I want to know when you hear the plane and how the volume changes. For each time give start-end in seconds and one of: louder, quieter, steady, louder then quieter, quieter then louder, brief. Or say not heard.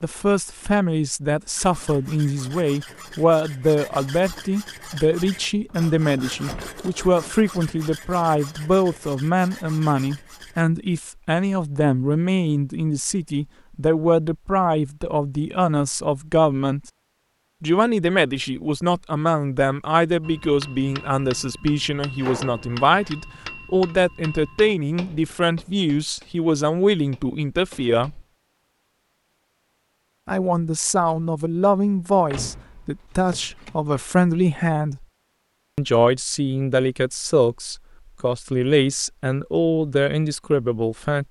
not heard.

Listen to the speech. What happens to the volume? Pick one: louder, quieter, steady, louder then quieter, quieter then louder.
steady.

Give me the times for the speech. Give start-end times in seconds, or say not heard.
0.0-16.8, 17.6-28.2, 30.2-35.0, 35.8-41.2.